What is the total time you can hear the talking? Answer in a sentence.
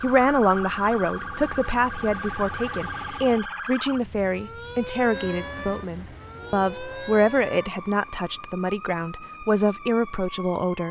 The talking can be heard for 11 seconds in total.